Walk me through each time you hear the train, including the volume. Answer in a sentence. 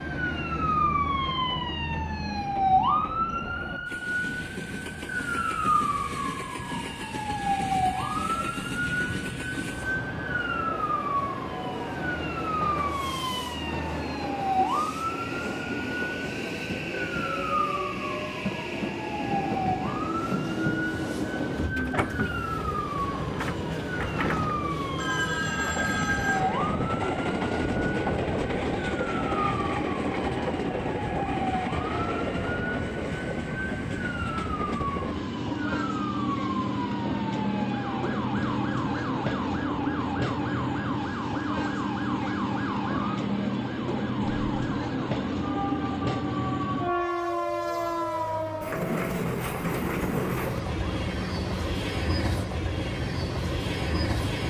You can hear the train from 0.0 to 54.4 s, getting louder.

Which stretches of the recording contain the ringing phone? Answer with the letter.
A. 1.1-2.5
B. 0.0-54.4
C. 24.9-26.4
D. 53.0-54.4
C.